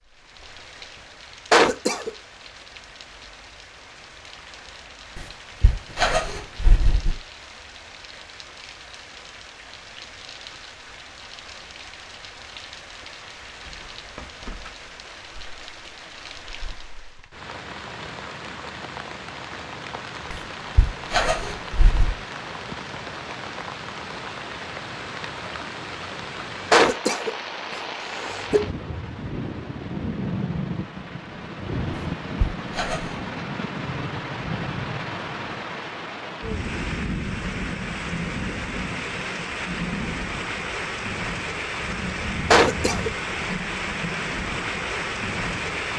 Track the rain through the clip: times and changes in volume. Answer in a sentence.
You can hear the rain from 0.0 to 45.9 s, getting louder.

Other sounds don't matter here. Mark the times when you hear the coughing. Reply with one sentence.
You can hear the coughing from 1.5 to 2.1 s, from 26.7 to 28.6 s and from 42.5 to 43.5 s.